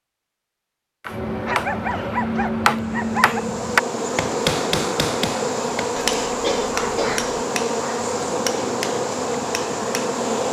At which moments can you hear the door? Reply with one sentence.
The door can't be heard in this clip.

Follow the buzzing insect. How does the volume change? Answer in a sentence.
The loudness of the buzzing insect stays about the same.